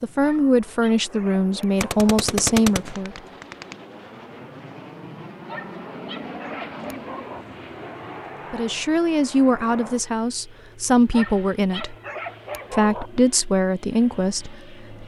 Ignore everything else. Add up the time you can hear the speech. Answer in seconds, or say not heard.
9 s.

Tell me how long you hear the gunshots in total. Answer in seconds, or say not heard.
2 s.